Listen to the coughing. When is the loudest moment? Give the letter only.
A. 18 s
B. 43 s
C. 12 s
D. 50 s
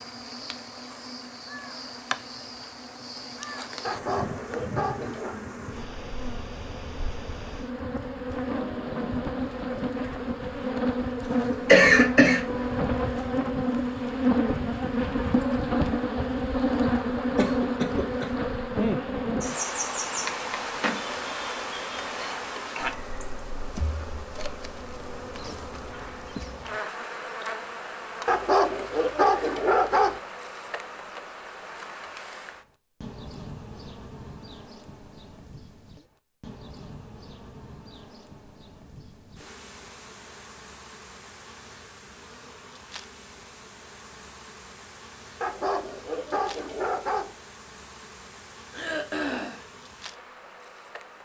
C.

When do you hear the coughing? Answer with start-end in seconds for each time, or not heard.
11.5-12.4, 17.4-18.3, 48.7-49.6.